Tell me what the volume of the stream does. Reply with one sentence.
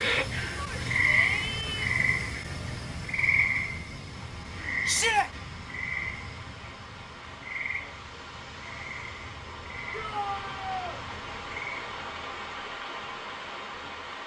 The volume of the stream goes up.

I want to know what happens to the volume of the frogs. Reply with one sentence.
The loudness of the frogs goes down.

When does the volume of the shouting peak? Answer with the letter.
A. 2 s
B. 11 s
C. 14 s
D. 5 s
D.